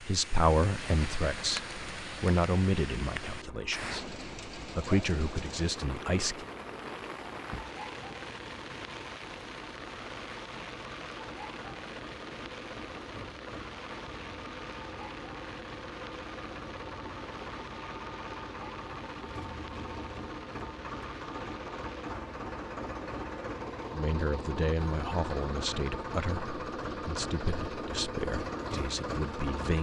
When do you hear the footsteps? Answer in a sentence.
You can't hear the footsteps here.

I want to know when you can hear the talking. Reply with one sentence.
You can hear the talking from 0.0 to 6.5 s and from 23.9 to 29.7 s.